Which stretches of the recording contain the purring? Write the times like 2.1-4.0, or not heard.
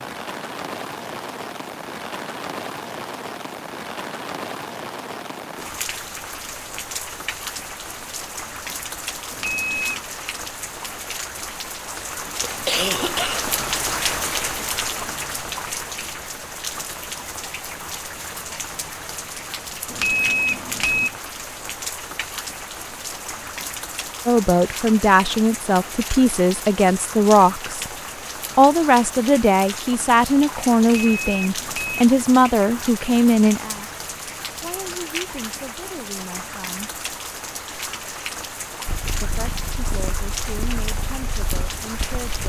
38.9-42.4.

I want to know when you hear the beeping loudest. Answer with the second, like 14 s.
20 s.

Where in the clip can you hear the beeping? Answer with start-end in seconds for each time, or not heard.
9.3-10.0, 19.9-21.1, 30.9-32.0.